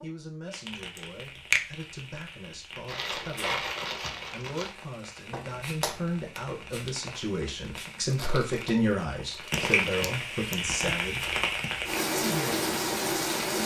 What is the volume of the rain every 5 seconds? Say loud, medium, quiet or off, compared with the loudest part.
quiet, medium, loud.